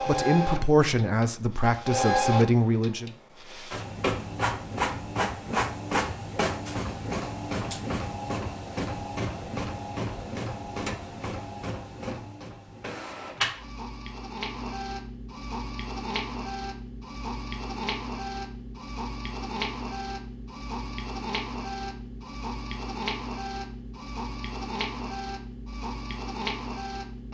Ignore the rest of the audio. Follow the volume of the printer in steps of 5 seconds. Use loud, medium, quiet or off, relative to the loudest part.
loud, loud, medium, medium, medium, medium.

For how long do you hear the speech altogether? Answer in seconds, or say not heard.
3 s.